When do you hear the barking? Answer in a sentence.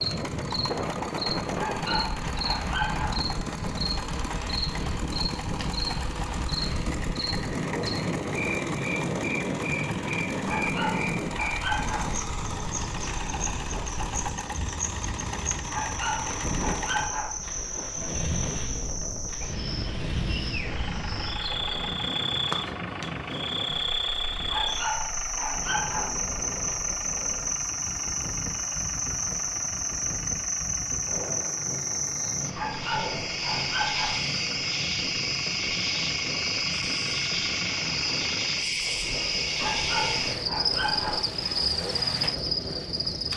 You can hear the barking from 1.6 to 3.1 s, from 10.4 to 12.1 s, from 15.7 to 17.3 s, from 24.4 to 26.1 s, from 32.5 to 34.1 s and from 39.6 to 41.2 s.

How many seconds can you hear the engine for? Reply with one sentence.
The engine can be heard for 43 seconds in total.